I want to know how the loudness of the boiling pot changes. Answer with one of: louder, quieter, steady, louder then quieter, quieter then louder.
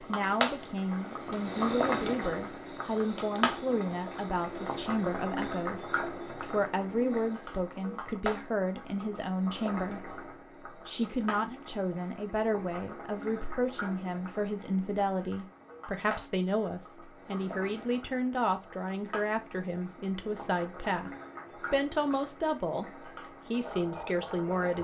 quieter.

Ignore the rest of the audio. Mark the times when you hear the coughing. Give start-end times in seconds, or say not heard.
not heard.